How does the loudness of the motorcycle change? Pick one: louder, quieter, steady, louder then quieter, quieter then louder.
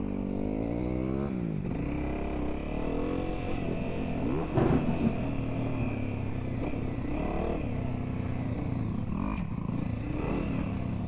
steady.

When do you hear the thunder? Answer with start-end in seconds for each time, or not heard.
4.4-6.0.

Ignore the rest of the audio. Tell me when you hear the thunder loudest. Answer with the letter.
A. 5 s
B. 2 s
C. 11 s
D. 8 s
A.